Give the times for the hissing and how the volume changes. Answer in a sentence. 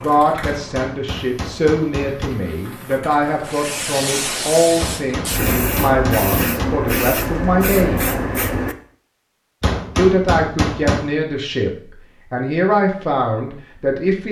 The hissing can be heard from 0.0 to 8.8 s, getting louder.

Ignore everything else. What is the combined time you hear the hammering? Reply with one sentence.
The hammering can be heard for 5 seconds in total.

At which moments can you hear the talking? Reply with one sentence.
The talking can be heard from 0.0 to 8.1 s and from 9.9 to 14.2 s.